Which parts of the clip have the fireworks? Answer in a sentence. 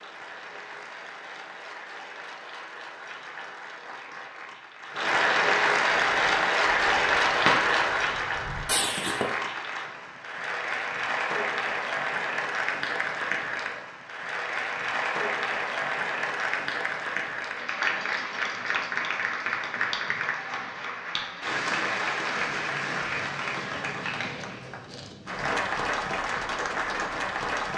You can hear the fireworks from 6.0 to 9.4 s.